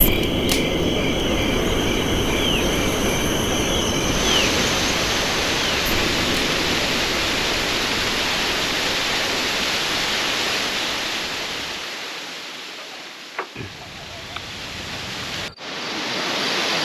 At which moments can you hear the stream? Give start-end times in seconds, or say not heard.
4.0-16.8.